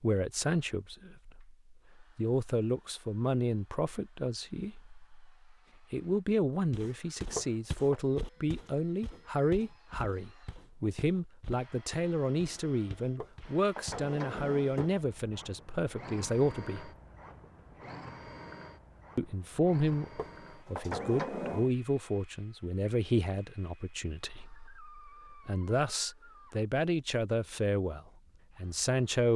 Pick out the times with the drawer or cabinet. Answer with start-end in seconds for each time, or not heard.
7.3-8.0, 13.2-14.9, 20.1-21.7.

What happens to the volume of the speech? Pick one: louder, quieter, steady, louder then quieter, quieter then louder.
steady.